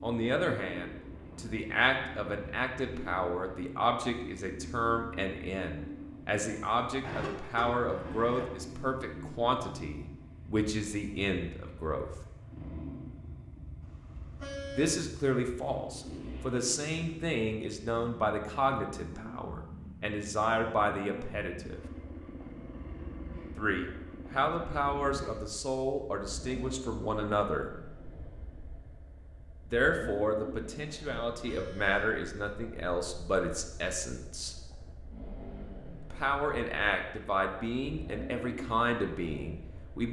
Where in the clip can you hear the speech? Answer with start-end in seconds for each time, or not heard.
0.0-12.1, 14.8-21.8, 23.6-27.7, 29.6-34.5, 36.1-40.0.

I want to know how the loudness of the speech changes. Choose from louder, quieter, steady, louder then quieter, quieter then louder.
steady.